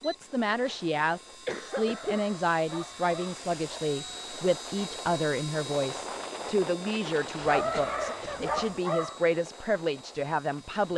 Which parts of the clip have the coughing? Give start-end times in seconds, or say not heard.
0.2-2.2, 7.5-8.8.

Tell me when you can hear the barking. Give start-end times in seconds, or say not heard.
1.6-3.9, 7.5-9.3.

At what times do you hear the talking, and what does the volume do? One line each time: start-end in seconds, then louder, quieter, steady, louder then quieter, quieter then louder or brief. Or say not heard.
0.0-10.9 steady.